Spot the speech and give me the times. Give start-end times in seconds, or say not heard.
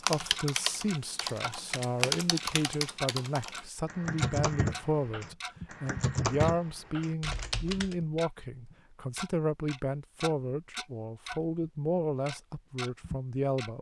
0.0-13.7.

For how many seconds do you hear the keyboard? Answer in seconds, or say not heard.
8 s.